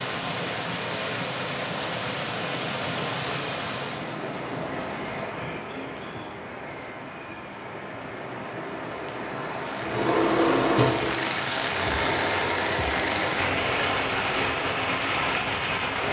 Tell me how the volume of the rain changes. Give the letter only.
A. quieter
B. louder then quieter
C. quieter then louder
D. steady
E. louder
C.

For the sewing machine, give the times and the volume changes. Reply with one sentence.
You can hear the sewing machine from 9.8 to 16.0 s, getting quieter.